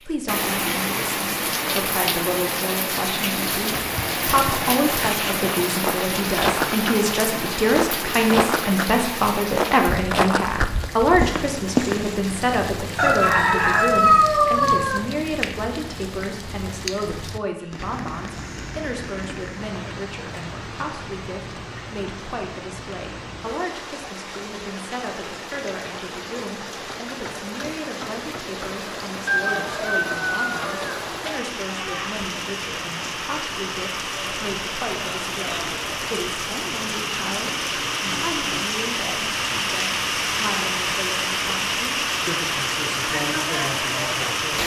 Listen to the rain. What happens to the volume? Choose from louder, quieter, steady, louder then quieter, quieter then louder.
quieter then louder.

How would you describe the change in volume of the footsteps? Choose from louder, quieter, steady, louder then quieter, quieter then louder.
louder.